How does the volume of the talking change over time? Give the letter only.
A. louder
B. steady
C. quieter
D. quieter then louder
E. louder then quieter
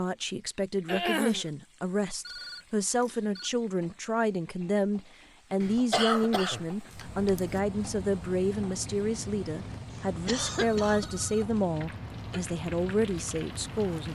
B.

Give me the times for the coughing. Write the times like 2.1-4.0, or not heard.
0.8-1.4, 5.6-7.6, 10.2-11.1.